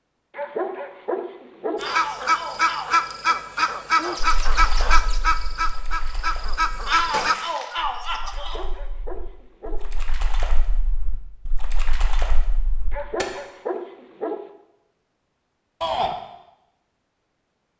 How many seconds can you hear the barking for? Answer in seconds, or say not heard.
5 s.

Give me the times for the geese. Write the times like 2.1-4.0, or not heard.
1.8-7.3.